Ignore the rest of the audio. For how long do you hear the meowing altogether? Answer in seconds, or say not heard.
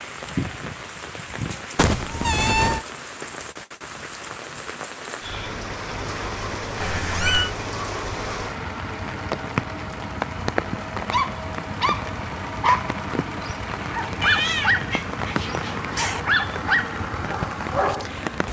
4 s.